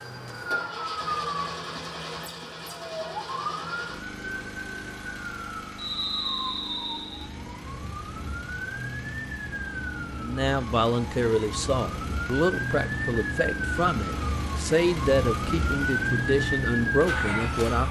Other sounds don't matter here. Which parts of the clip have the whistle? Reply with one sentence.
You can hear the whistle from 5.8 to 7.2 s.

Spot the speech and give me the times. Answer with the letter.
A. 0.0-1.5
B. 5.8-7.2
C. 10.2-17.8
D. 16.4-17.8
C.